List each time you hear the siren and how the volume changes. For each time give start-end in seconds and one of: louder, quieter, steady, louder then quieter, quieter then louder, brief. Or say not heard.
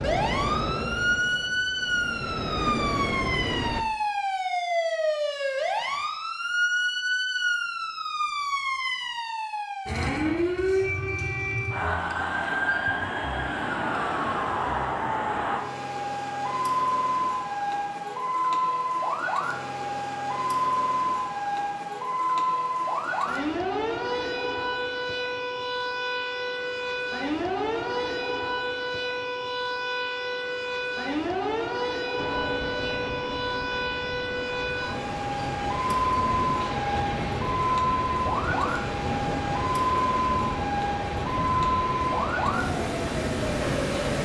0.0-44.2 steady.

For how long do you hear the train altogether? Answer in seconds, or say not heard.
16 s.